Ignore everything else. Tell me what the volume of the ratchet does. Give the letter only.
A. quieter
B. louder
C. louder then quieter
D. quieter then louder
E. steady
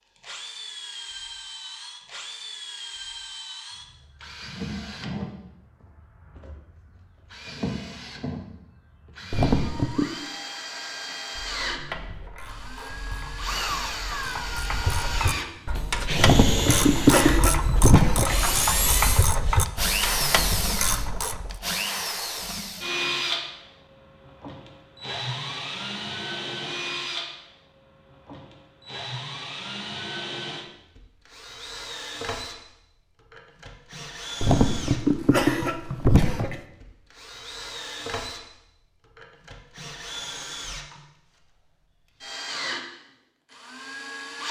B.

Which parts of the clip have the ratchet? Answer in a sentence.
You can hear the ratchet from 11.1 to 21.6 s.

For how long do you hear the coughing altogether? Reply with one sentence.
You can hear the coughing for 5 seconds altogether.